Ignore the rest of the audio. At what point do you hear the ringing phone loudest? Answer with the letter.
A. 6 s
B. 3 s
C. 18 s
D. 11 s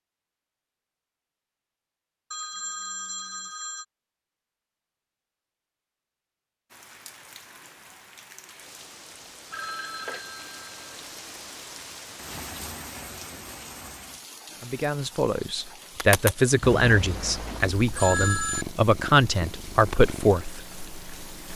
C.